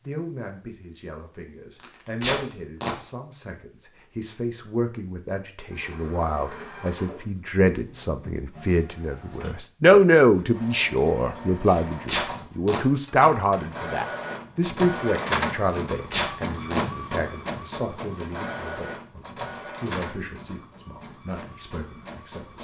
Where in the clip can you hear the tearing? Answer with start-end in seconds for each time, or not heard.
1.8-3.0, 11.7-12.8, 15.7-16.9.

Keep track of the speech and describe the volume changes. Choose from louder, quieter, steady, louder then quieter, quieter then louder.
louder then quieter.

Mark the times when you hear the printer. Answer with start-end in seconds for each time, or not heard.
5.7-22.5.